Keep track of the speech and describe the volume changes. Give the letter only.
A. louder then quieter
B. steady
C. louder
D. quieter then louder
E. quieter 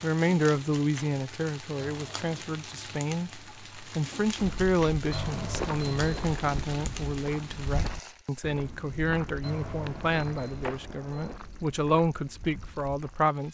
B.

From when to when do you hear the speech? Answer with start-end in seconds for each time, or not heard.
0.0-13.4.